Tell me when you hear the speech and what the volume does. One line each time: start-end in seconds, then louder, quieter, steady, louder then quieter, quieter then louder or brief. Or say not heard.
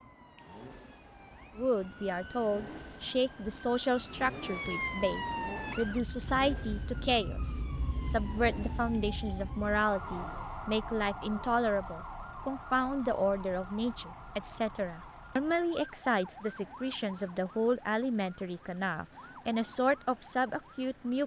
1.6-21.2 steady.